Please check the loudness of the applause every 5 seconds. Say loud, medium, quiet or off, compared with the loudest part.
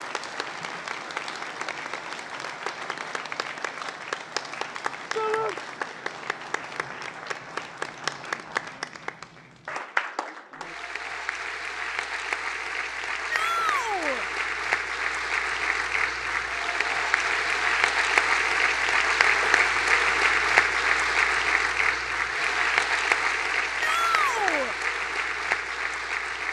medium, medium, medium, loud, loud, medium.